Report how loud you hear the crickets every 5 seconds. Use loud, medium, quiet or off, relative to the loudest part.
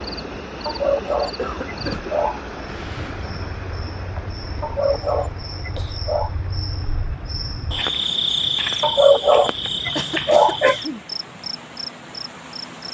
medium, loud, loud.